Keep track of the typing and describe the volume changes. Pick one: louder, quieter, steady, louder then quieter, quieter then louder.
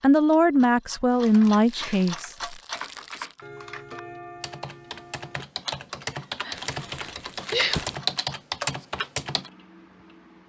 louder.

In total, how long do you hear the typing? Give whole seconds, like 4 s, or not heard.
8 s.